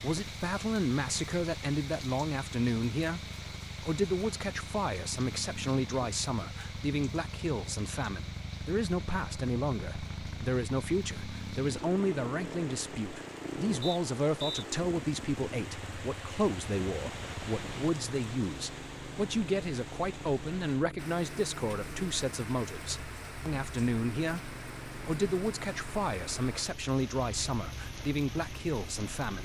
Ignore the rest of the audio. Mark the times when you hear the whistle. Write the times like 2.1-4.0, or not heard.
13.8-14.7.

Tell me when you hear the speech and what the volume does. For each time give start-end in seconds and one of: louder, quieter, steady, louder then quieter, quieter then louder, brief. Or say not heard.
0.0-29.4 steady.